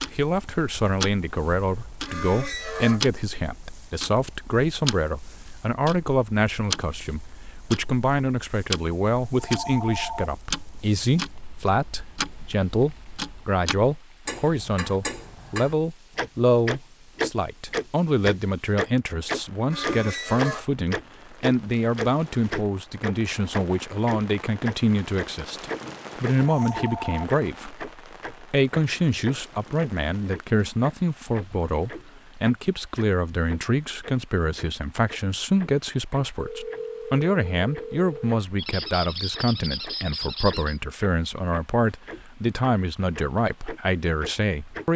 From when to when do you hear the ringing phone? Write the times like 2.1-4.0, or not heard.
9.3-10.3, 26.4-27.2, 36.4-38.4.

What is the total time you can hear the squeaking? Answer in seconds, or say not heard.
4 s.